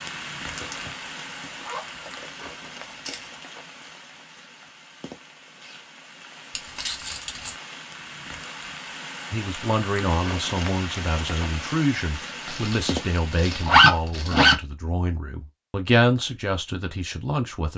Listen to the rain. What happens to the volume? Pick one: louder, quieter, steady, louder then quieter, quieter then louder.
quieter then louder.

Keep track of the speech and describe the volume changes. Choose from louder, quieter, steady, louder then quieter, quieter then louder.
quieter then louder.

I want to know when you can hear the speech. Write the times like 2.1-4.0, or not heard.
9.3-17.7.